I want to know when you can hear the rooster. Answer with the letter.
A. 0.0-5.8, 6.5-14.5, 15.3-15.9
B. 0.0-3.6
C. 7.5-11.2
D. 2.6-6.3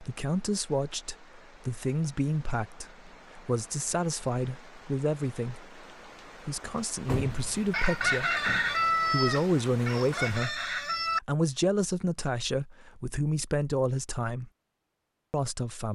C.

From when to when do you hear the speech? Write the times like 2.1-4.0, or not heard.
0.0-5.8, 6.5-14.5, 15.3-15.9.